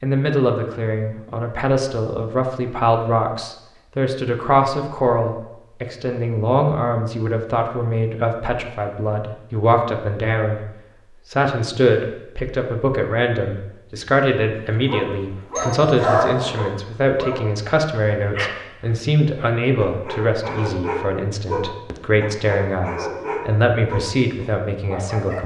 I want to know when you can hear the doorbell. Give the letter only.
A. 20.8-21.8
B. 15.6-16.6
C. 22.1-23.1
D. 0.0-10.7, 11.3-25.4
B.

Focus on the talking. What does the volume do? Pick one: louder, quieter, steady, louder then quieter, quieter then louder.
steady.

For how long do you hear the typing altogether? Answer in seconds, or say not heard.
not heard.